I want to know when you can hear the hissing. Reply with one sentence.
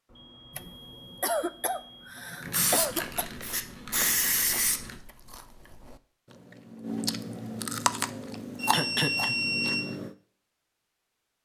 You can hear the hissing from 2.4 to 5.0 s.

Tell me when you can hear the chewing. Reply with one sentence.
You can hear the chewing from 2.8 to 10.2 s.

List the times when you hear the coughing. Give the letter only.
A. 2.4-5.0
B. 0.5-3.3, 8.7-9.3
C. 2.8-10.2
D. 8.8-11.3
B.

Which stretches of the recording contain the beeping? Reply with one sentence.
You can hear the beeping from 0.1 to 2.1 s and from 8.6 to 9.8 s.